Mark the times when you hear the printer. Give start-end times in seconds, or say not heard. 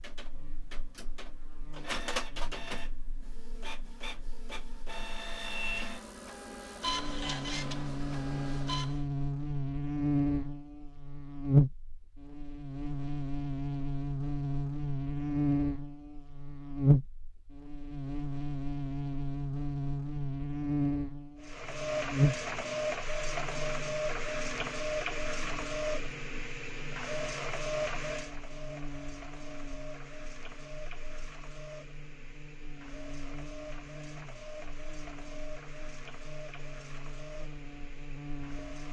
0.0-9.0, 21.4-38.8.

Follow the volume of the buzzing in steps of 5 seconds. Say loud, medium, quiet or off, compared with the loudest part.
quiet, medium, loud, loud, loud, quiet, quiet, quiet.